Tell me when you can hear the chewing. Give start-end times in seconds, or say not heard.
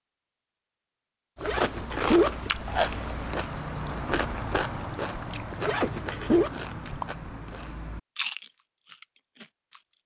1.4-9.8.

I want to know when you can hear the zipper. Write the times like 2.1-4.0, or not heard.
1.4-2.9, 5.6-6.5.